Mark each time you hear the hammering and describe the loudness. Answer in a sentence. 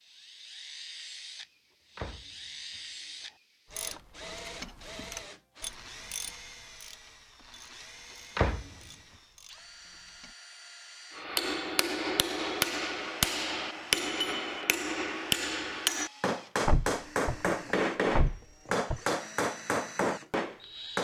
The hammering can be heard from 11.1 to 21.0 s, at a steady volume.